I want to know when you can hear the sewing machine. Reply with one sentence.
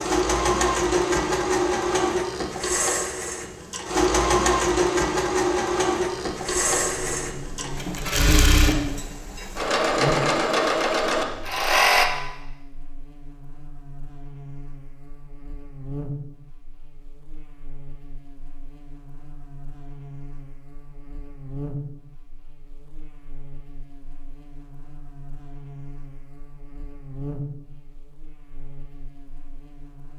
You can hear the sewing machine from 0.0 to 12.1 s.